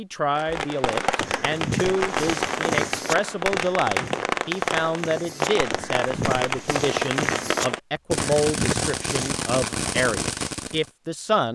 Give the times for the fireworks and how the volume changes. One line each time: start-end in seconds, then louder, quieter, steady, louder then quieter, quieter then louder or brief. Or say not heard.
0.3-10.9 steady.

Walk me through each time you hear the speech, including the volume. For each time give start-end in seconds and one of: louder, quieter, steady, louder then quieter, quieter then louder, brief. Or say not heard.
0.0-11.5 steady.